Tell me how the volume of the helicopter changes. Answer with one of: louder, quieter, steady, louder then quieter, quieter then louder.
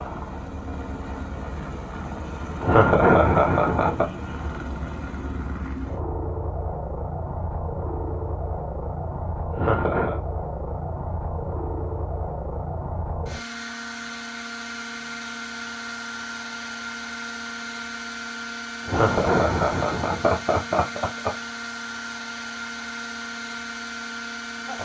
steady.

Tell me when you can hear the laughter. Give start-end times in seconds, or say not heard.
2.6-4.0, 9.5-10.2, 18.9-21.3.